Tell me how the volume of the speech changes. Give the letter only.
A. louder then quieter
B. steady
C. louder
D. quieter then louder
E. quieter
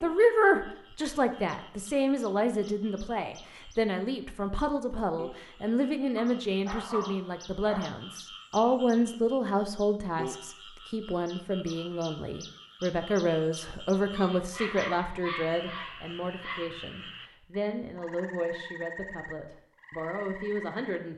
E.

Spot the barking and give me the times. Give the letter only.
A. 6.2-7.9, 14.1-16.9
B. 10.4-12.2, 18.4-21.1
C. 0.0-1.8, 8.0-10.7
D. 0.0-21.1
A.